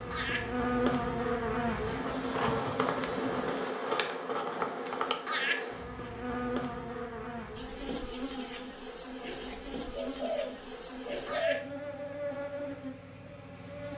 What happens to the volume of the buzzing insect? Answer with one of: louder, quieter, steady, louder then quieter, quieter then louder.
quieter.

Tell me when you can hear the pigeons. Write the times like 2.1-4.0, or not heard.
9.9-11.6.